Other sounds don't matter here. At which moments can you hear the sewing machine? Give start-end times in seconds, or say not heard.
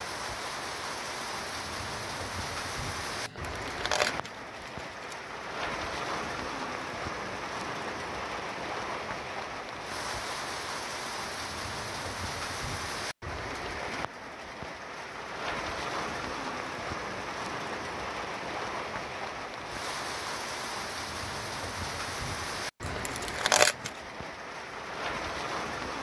not heard.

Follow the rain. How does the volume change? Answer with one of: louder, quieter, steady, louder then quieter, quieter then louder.
steady.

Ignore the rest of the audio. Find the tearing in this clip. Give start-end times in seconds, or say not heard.
3.2-5.2, 22.8-23.9.